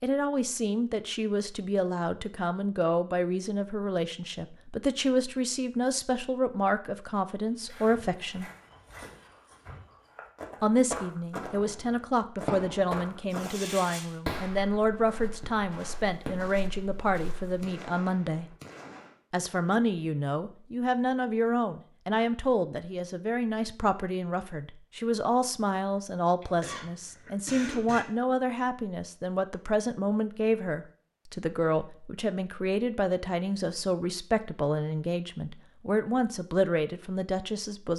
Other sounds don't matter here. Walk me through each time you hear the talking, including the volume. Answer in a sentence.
The talking can be heard from 0.0 to 8.5 s, at a steady volume; from 10.6 to 18.6 s, at a steady volume; and from 19.3 to 37.9 s, at a steady volume.